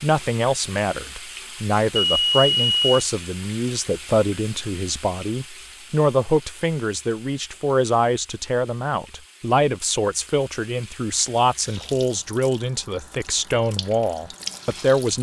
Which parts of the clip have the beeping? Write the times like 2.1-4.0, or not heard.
1.9-3.0.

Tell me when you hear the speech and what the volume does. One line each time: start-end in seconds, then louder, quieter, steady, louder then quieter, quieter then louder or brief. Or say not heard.
0.0-15.1 steady.